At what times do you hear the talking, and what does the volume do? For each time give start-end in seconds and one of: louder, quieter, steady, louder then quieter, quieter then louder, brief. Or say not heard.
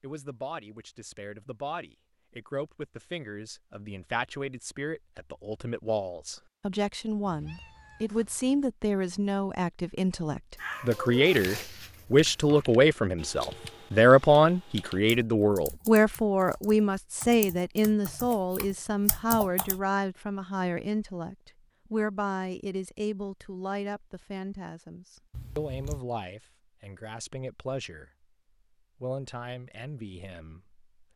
0.0-28.2 louder then quieter
29.0-30.8 brief.